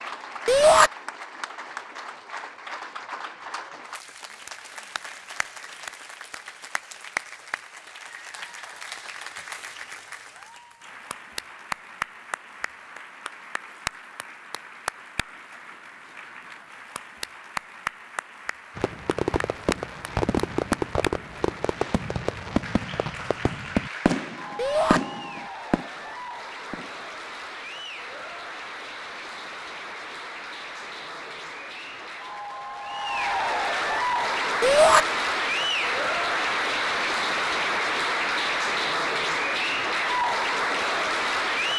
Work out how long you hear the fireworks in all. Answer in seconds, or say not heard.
8 s.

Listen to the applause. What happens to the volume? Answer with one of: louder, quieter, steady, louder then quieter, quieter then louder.
louder.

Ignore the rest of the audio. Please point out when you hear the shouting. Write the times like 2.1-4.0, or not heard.
0.5-0.9, 24.6-25.0, 34.6-35.0.